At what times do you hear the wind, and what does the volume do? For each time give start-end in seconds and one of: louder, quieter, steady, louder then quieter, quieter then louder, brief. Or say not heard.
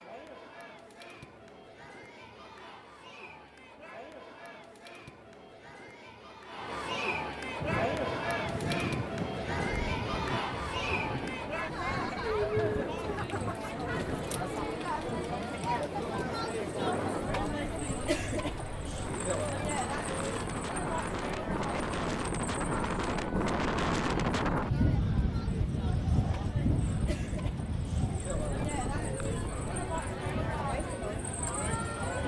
7.5-32.2 louder then quieter.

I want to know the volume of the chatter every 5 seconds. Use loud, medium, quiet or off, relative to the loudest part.
quiet, loud, loud, loud, medium, medium, loud.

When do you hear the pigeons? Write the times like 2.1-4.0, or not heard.
not heard.